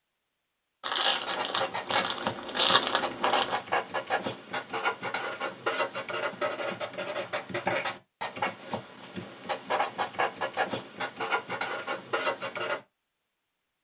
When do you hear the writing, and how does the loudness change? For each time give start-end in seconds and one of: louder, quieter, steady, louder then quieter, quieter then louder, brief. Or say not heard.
1.1-12.8 steady.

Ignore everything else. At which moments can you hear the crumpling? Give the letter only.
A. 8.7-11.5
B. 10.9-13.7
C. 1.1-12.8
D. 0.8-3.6
D.